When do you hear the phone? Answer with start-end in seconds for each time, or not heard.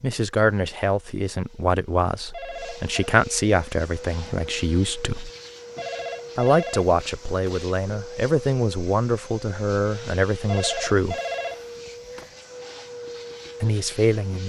2.3-3.1, 5.8-7.6, 10.4-12.3.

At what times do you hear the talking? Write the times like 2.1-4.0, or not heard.
0.0-5.3, 6.3-11.2, 13.6-14.4.